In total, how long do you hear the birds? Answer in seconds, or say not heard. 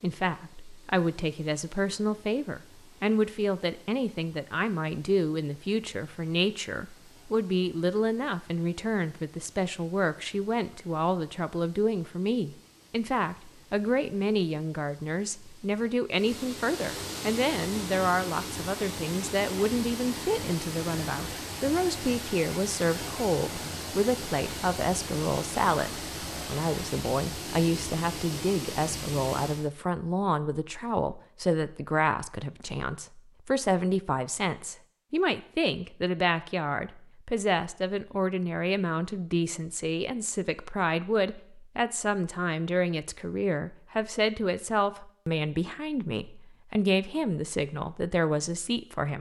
not heard.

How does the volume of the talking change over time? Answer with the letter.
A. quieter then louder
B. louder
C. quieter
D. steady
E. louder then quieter
D.